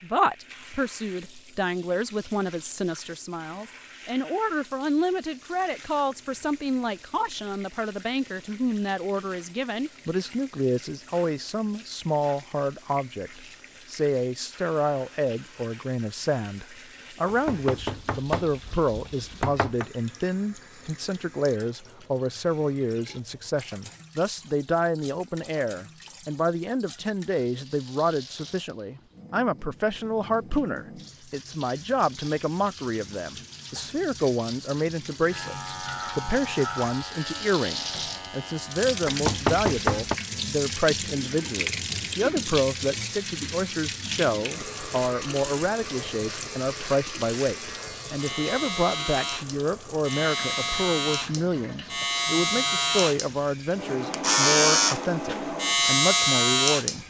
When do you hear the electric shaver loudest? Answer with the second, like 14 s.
56 s.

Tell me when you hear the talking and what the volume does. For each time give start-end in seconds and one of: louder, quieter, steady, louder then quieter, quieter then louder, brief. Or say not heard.
0.0-57.0 steady.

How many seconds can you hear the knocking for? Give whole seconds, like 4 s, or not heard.
4 s.